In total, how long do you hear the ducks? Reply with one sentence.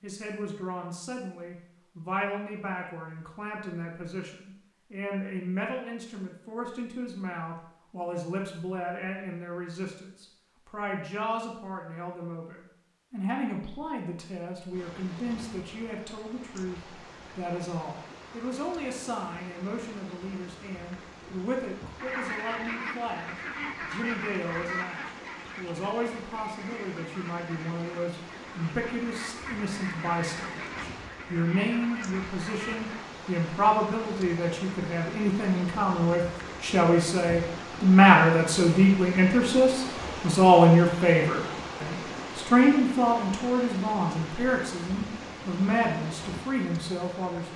You can hear the ducks for 11 seconds altogether.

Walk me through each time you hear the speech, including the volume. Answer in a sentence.
The speech can be heard from 0.0 to 47.5 s, getting louder.